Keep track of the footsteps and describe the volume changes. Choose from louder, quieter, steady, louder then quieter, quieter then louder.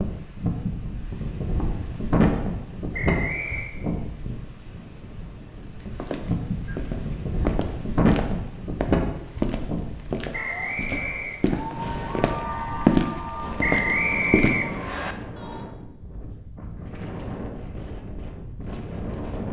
louder.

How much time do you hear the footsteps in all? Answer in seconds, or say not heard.
9 s.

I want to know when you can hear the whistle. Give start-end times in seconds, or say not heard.
2.9-3.8, 10.3-11.4, 13.6-15.2.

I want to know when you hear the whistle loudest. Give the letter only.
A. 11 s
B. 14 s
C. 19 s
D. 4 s
B.